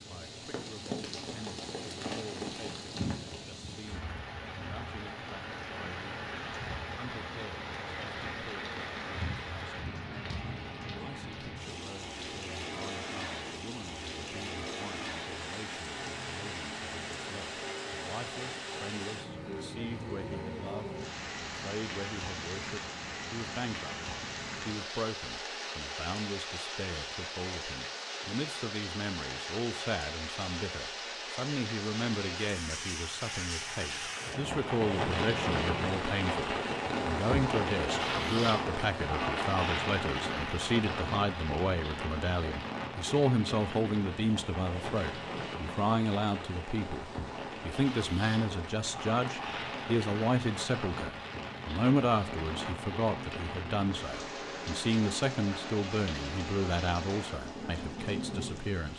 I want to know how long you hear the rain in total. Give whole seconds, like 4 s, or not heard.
59 s.